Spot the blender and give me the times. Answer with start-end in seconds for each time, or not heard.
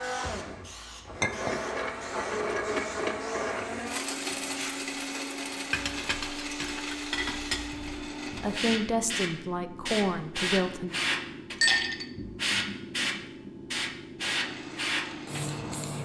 0.0-8.8, 14.3-16.0.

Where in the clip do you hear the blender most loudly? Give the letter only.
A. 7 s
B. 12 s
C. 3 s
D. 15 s
C.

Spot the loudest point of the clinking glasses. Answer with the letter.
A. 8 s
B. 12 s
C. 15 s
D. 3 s
B.